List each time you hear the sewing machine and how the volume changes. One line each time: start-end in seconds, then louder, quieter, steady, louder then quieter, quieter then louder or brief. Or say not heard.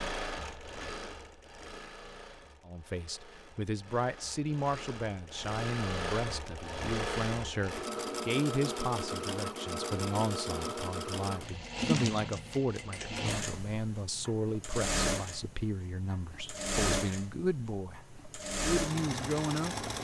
0.0-19.9 louder.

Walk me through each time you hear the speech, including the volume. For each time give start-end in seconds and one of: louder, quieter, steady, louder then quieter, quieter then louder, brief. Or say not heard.
2.6-19.9 steady.